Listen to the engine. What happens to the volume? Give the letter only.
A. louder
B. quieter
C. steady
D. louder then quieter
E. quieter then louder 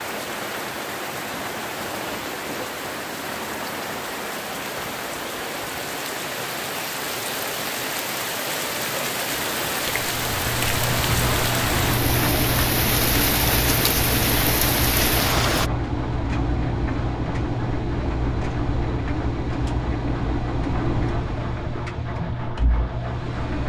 C.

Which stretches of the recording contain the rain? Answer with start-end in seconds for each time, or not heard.
0.0-15.7.